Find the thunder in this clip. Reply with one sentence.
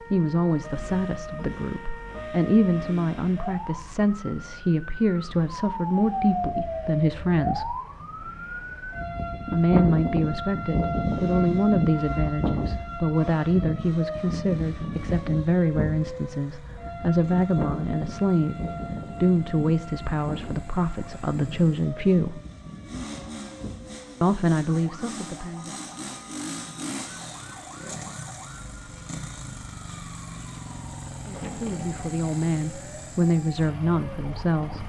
The thunder can be heard from 31.4 to 32.1 s.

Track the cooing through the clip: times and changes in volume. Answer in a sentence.
You can't hear the cooing here.